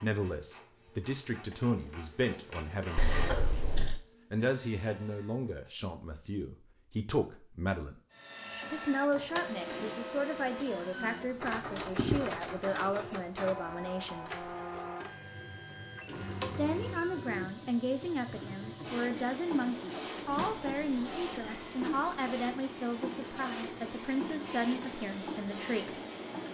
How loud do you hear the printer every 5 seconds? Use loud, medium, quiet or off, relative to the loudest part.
medium, loud, loud, loud, loud, loud.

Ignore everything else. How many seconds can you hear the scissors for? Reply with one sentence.
You can hear the scissors for 5 seconds altogether.